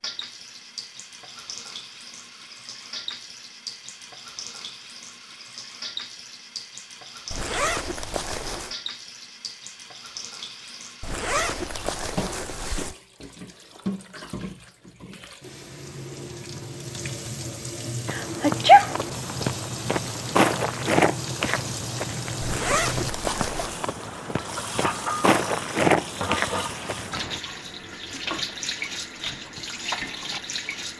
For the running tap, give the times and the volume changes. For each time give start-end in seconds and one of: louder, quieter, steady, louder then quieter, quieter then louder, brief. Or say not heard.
0.0-30.9 louder.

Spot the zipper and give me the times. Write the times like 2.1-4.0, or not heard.
7.3-8.8, 11.0-12.9, 22.4-23.9.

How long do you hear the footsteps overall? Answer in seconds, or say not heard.
9 s.